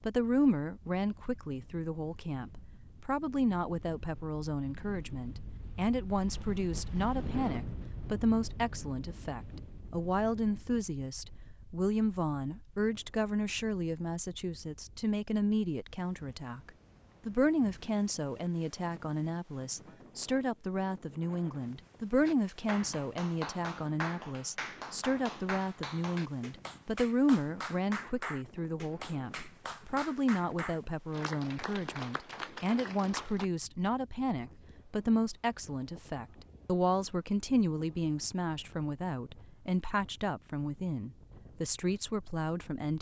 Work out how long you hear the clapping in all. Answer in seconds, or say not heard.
11 s.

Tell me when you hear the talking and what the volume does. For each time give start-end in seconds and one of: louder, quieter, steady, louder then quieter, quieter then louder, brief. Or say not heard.
0.0-42.9 steady.